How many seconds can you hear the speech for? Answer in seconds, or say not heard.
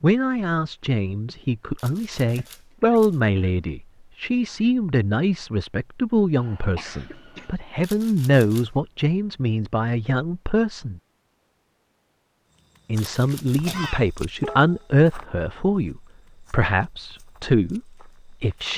17 s.